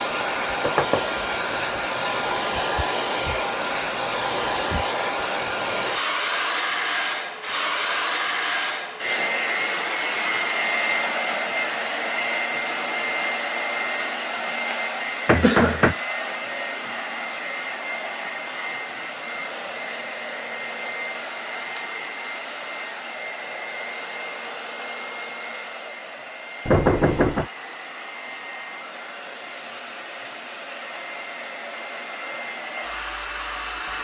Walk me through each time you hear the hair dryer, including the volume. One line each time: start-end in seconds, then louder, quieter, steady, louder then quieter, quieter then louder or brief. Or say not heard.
0.0-33.9 quieter.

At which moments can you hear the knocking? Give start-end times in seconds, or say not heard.
0.6-1.0, 15.2-15.9, 26.6-27.4.